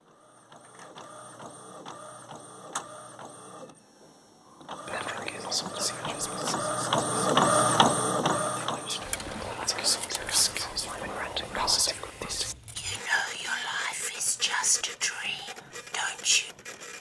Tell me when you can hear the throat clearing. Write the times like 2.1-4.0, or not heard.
not heard.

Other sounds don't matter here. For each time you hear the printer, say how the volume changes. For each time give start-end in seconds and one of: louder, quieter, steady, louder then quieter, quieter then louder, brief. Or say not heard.
0.0-16.9 louder then quieter.